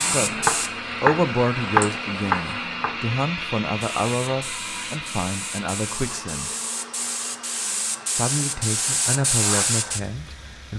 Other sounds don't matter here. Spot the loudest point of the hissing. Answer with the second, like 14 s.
9 s.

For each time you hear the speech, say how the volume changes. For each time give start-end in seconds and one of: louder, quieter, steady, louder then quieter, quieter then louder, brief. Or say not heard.
0.0-6.5 quieter
8.2-10.7 brief.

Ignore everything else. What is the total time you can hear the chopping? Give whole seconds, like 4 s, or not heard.
3 s.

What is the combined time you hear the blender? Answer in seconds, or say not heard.
11 s.